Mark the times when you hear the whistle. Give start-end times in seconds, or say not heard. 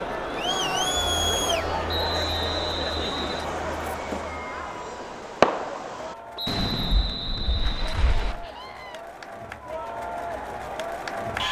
1.9-3.5, 6.3-8.3.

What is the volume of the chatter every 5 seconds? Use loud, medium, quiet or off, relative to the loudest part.
loud, medium, loud.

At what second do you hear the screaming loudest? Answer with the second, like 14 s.
1 s.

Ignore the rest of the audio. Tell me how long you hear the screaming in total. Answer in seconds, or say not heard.
2 s.